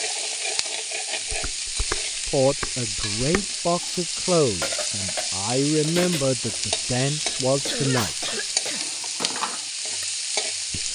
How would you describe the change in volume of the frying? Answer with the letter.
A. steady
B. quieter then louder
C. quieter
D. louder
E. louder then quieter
A.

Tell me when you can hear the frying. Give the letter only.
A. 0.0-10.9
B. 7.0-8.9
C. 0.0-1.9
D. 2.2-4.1
A.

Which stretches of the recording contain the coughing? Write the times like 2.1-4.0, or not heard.
7.0-8.9.